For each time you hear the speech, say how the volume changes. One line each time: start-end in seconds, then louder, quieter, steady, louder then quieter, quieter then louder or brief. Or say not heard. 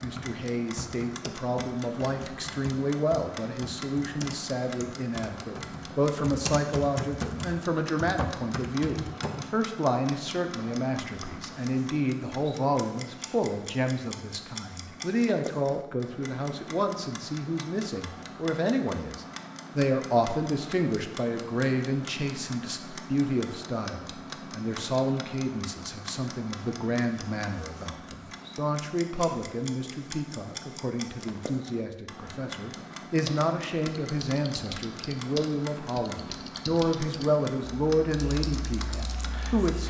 0.0-39.8 steady.